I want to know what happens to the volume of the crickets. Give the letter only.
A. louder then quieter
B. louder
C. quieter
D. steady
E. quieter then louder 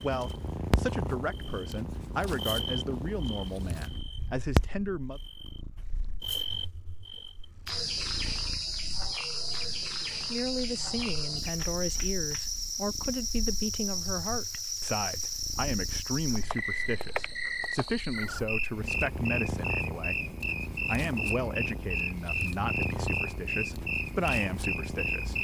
D.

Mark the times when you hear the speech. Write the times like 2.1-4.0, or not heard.
0.0-5.2, 10.3-25.3.